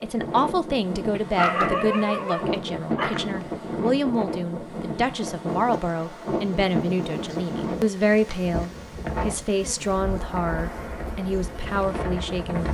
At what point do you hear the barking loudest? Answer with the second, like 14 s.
2 s.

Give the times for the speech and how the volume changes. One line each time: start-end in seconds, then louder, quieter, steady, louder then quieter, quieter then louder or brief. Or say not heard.
0.0-12.6 steady.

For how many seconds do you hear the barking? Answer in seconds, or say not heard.
2 s.